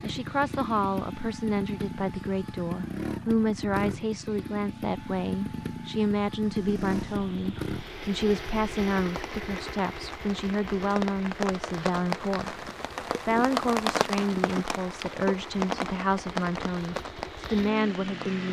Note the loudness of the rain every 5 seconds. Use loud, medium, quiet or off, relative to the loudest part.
off, quiet, loud, loud.